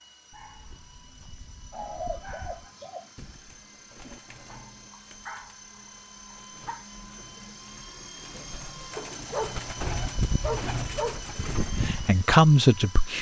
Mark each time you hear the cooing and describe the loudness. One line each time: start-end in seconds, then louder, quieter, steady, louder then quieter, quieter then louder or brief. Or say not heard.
1.7-12.2 quieter then louder.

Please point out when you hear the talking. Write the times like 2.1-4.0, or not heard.
11.6-13.1.